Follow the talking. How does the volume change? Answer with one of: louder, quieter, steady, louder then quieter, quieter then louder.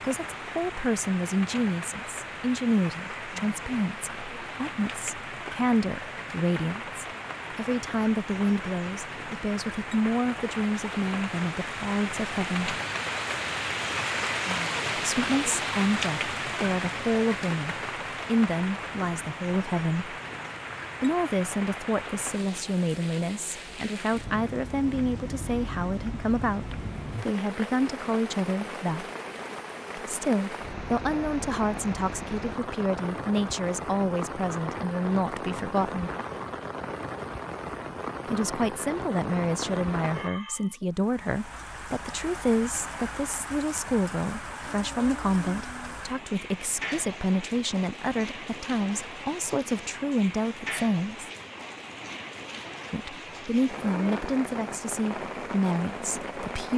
steady.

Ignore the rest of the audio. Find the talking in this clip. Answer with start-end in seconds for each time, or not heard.
0.0-12.8, 14.9-20.1, 21.0-29.1, 29.9-36.1, 38.2-51.3, 52.9-56.7.